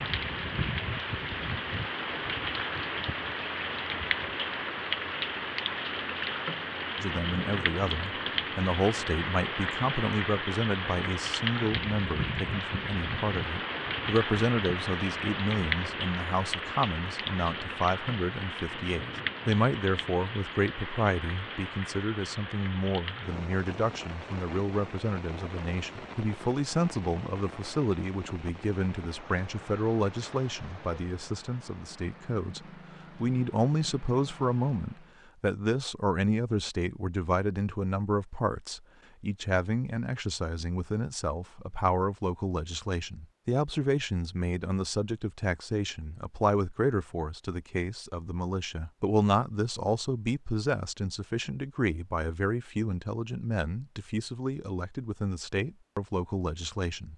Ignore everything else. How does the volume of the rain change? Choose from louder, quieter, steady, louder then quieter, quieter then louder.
quieter.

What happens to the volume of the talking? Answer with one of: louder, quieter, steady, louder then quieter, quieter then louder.
steady.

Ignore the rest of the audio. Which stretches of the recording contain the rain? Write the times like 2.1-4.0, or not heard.
0.0-35.2.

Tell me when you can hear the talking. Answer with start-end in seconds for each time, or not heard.
7.0-57.1.